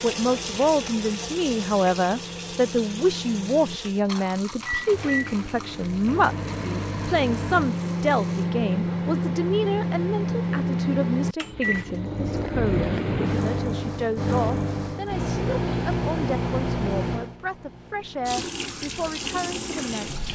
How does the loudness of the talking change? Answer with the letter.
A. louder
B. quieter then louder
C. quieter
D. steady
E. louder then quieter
C.